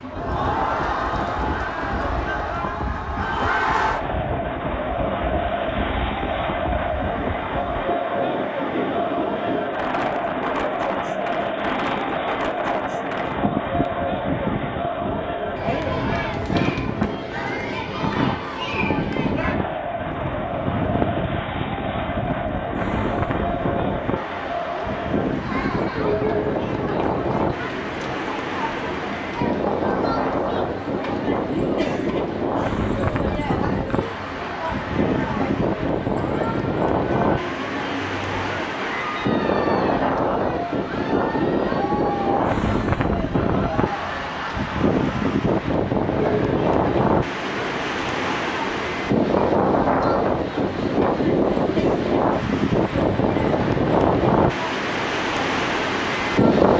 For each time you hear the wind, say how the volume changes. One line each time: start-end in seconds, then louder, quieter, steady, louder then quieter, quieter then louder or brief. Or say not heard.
0.0-56.7 louder.